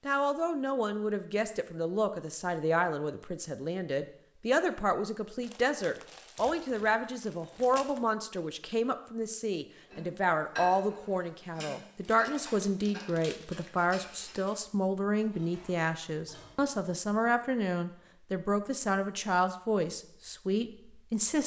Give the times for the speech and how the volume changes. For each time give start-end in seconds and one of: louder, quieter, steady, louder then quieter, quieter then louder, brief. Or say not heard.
0.1-21.4 steady.